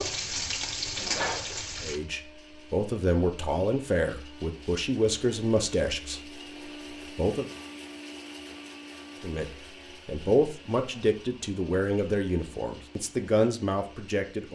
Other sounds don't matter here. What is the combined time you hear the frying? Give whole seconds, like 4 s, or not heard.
2 s.